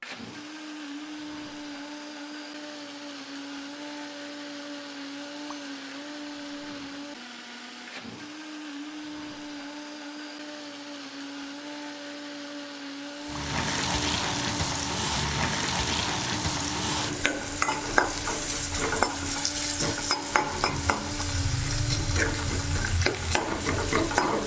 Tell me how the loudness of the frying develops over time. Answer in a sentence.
The loudness of the frying stays about the same.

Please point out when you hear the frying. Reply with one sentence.
You can hear the frying from 13.2 to 24.4 s.